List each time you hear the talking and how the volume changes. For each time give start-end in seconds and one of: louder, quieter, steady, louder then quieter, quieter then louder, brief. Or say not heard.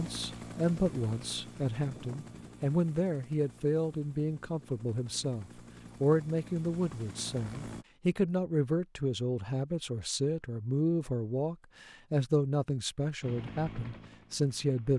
0.0-14.9 steady.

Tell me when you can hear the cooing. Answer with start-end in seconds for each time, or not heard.
not heard.